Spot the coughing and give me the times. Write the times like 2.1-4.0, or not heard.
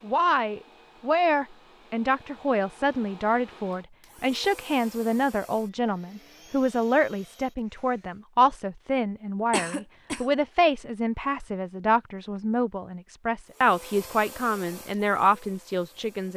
9.5-10.2.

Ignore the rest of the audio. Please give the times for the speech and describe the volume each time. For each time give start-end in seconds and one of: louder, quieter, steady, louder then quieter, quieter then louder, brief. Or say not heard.
0.0-16.3 steady.